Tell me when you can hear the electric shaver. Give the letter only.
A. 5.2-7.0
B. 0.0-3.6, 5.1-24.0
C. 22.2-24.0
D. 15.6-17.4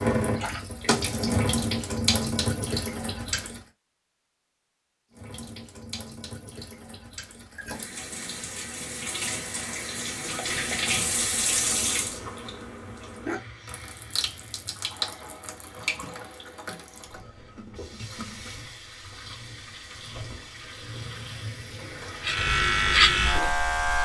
C.